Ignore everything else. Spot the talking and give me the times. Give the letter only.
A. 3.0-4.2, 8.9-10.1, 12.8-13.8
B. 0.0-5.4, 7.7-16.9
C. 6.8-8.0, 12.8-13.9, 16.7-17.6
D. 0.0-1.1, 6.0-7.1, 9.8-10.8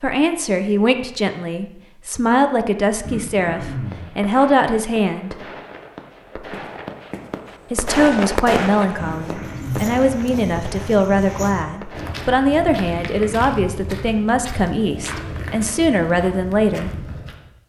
B.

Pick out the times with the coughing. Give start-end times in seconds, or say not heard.
3.0-4.2, 8.9-10.1, 12.8-13.8.